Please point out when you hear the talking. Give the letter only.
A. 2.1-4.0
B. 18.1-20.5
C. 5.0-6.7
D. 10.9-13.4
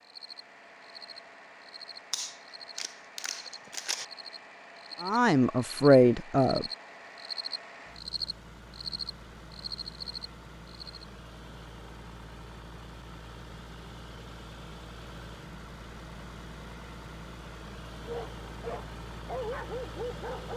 C.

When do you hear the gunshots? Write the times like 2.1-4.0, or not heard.
2.1-4.0.